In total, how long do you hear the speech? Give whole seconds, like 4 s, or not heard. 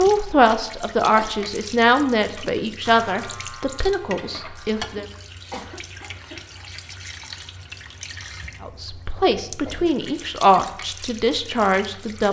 9 s.